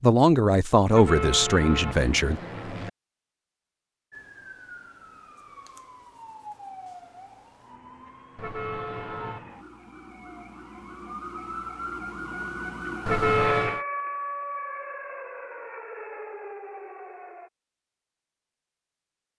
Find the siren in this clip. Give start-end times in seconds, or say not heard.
4.1-17.5.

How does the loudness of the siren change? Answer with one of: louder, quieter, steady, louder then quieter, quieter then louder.
louder then quieter.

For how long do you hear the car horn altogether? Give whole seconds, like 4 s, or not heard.
4 s.